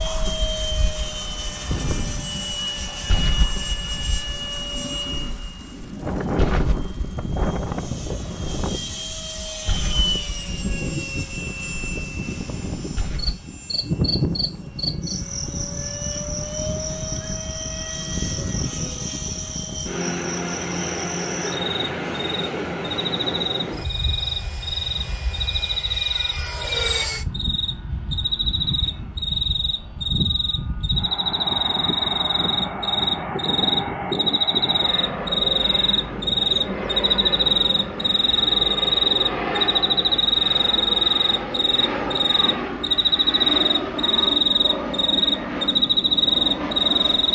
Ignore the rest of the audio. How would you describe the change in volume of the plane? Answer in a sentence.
The loudness of the plane stays about the same.